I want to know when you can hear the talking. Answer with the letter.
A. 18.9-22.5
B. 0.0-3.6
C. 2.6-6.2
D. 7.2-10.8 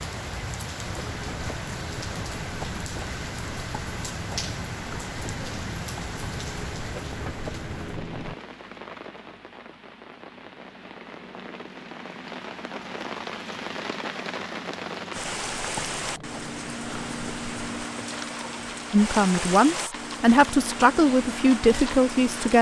A.